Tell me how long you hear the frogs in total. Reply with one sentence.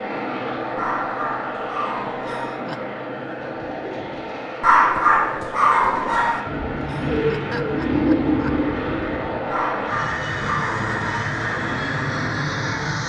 The frogs can't be heard in this clip.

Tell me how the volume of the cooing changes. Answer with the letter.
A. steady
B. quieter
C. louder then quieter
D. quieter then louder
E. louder
E.